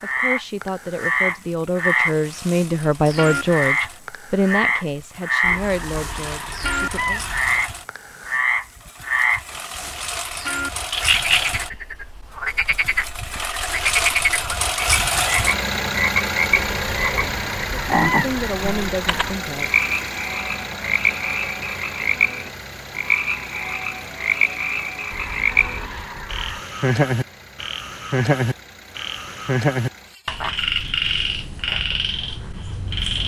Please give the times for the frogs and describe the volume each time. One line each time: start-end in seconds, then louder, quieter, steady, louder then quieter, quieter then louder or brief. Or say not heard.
0.0-33.2 steady.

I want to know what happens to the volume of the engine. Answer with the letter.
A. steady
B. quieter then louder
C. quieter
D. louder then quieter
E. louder
D.